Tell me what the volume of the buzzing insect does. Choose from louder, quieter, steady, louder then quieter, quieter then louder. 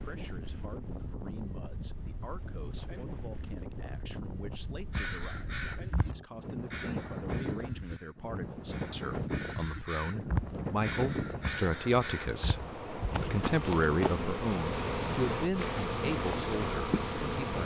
louder.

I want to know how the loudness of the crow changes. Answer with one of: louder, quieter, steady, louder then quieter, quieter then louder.
quieter then louder.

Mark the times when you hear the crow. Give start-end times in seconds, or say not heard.
4.9-14.3.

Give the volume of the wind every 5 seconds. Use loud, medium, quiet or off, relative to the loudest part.
medium, loud, loud, loud.